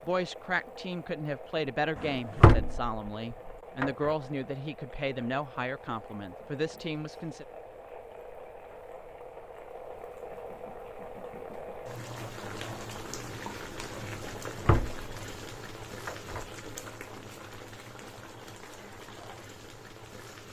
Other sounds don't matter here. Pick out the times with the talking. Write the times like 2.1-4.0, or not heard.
0.1-7.5.